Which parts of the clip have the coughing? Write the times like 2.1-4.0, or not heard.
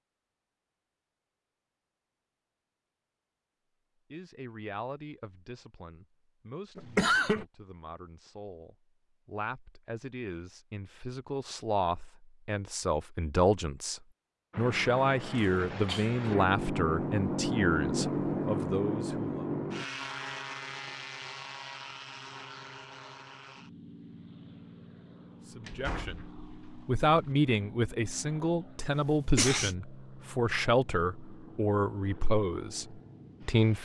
6.8-7.5, 15.3-16.2, 28.9-29.8.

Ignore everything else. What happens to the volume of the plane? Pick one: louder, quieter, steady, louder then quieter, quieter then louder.
quieter.